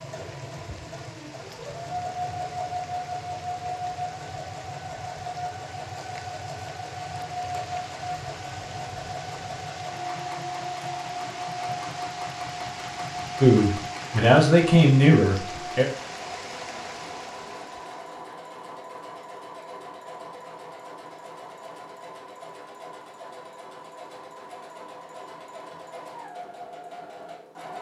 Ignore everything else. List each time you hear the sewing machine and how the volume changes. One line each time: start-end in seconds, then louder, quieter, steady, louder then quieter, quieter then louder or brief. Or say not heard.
0.0-27.7 quieter.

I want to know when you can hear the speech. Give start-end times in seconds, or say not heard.
13.4-15.8.